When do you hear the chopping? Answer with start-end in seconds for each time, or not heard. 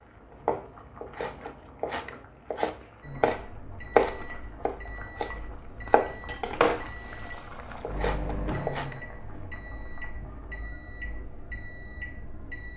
0.3-7.2, 7.8-8.9.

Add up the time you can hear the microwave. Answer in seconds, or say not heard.
10 s.